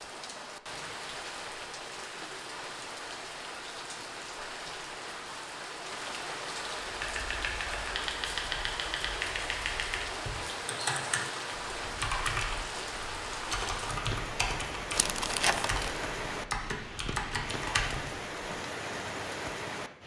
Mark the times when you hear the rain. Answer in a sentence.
The rain can be heard from 0.0 to 20.0 s.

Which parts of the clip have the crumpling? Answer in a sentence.
You can hear the crumpling from 14.9 to 15.9 s.